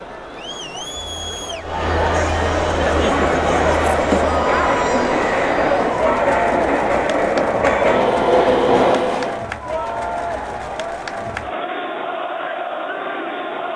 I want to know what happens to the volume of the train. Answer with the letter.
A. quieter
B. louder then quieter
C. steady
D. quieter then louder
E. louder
E.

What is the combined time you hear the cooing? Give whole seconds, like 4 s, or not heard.
not heard.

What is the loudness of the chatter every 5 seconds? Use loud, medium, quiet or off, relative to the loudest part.
loud, loud, medium.